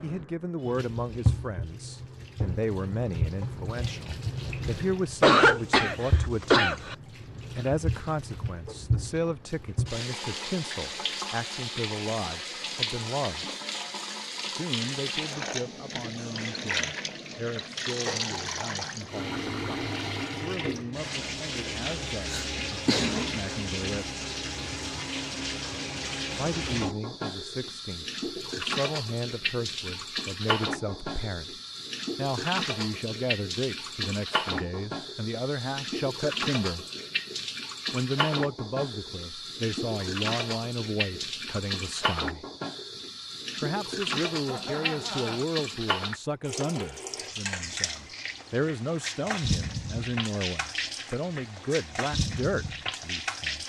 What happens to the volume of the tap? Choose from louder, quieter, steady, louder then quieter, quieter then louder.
steady.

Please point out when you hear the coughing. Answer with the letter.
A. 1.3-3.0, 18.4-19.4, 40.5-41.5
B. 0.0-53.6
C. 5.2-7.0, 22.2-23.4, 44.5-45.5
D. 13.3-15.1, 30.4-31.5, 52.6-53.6
C.